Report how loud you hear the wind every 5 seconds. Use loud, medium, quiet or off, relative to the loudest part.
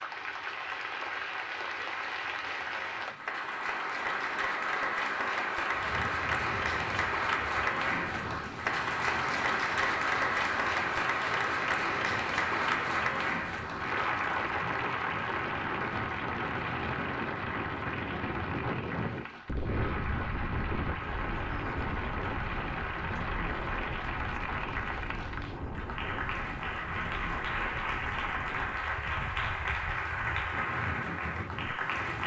off, medium, medium, loud, loud, medium, medium.